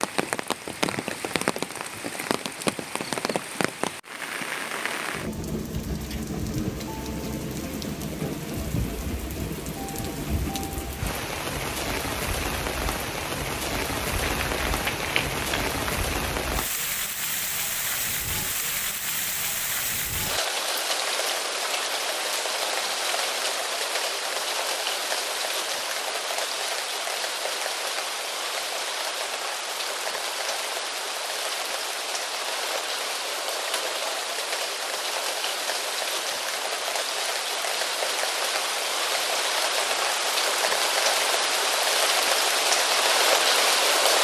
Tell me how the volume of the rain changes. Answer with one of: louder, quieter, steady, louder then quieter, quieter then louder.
louder.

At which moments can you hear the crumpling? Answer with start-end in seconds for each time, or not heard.
14.2-15.9.